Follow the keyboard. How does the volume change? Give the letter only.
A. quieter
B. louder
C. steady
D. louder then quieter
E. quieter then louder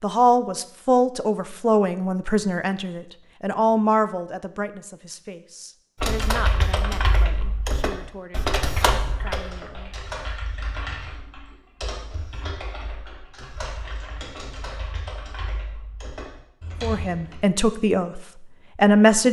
A.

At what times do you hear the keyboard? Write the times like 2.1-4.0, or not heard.
6.0-17.4.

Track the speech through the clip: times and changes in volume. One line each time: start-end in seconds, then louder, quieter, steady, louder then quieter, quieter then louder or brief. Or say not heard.
0.0-9.9 quieter
16.8-19.2 brief.